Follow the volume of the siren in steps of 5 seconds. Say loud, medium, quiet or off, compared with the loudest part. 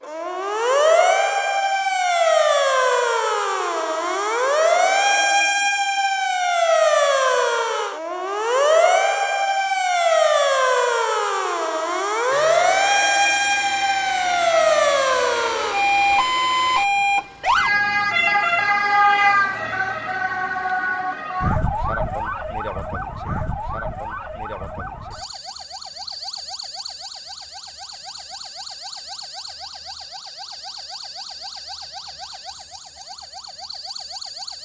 loud, loud, loud, loud, medium, quiet, quiet.